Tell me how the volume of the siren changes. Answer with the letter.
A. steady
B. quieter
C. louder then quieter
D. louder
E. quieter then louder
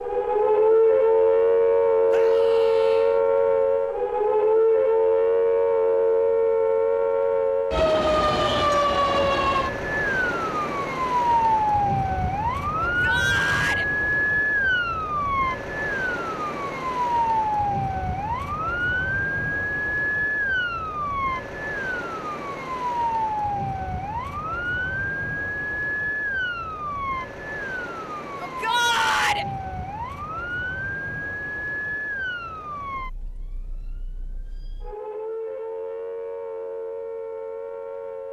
B.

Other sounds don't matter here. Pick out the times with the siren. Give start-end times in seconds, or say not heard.
0.0-38.2.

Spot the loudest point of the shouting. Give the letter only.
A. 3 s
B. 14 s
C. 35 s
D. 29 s
D.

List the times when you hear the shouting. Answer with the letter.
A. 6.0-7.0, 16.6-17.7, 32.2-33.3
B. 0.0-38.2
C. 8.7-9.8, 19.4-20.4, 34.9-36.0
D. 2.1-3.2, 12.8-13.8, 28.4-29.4
D.